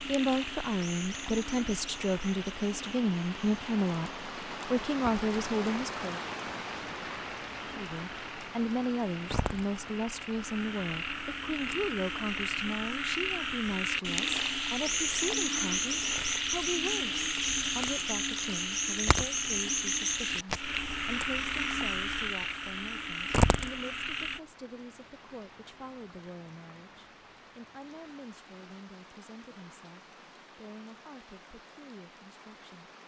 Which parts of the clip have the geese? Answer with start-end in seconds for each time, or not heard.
not heard.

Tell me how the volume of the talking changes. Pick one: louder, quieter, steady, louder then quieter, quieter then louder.
quieter.